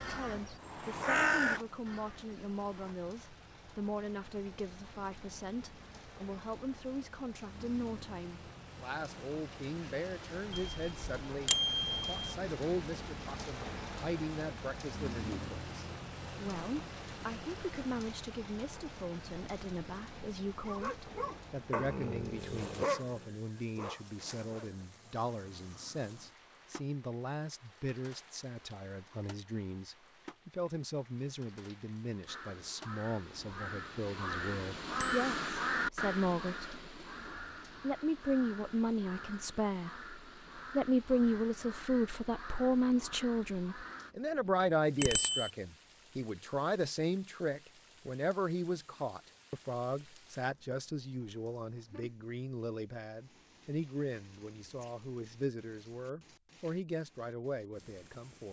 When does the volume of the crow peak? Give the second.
1 s.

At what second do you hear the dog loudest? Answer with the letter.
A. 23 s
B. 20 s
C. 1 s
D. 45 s
A.